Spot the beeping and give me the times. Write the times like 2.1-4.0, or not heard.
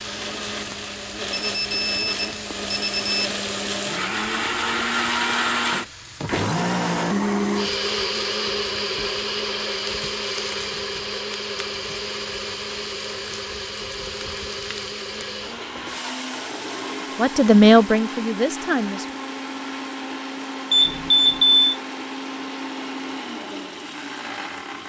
1.3-3.3, 20.7-21.8.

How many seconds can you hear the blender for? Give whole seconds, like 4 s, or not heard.
25 s.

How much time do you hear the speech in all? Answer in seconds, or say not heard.
2 s.